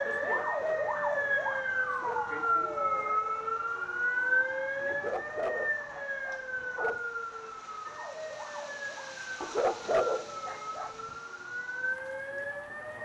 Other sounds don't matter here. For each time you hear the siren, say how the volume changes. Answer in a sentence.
The siren can be heard from 0.0 to 13.0 s, getting quieter.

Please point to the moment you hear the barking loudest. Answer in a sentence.
The loudest moment of the barking is at 10 seconds.